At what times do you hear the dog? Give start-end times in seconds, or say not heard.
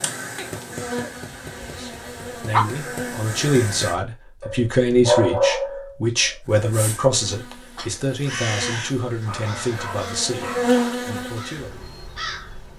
0.3-2.6, 4.4-6.3, 8.7-10.9.